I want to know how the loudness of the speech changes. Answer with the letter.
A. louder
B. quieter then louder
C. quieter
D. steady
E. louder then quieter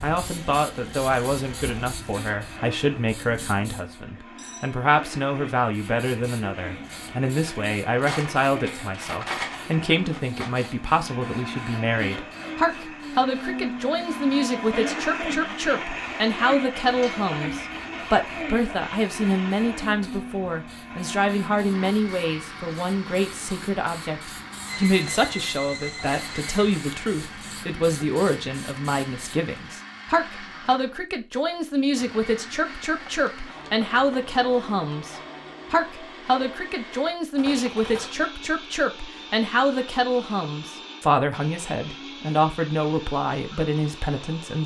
D.